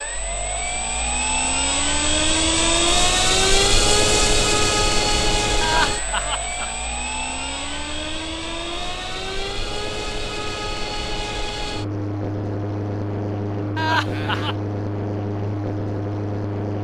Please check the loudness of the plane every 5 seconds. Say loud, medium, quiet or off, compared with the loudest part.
loud, medium, medium, medium.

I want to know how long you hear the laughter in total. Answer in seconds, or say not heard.
2 s.